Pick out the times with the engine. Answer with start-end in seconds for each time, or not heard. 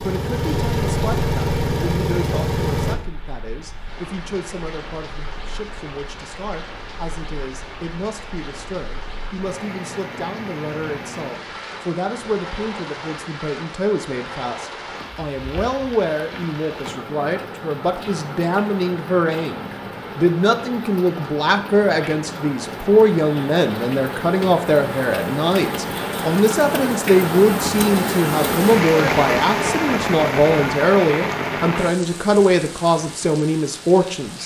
0.0-3.0.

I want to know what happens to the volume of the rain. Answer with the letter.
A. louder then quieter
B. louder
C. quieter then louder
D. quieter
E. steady
B.